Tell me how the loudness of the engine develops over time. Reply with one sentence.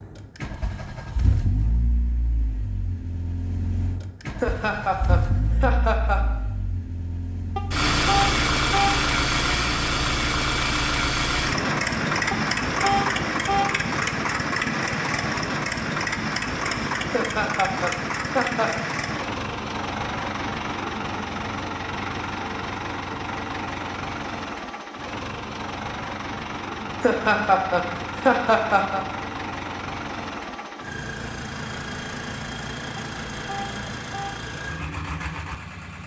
The loudness of the engine goes up, then down.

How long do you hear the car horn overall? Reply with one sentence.
The car horn can be heard for 4 seconds in total.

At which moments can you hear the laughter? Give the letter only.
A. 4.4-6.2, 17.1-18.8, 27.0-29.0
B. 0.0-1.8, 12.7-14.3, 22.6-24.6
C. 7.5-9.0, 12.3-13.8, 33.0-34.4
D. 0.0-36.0
A.